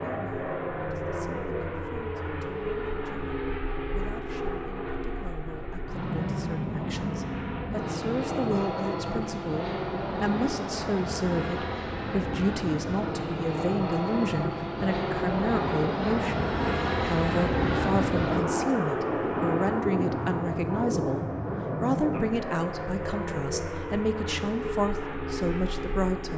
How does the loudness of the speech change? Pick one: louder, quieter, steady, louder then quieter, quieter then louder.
louder.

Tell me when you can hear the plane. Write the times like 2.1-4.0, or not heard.
0.0-26.3.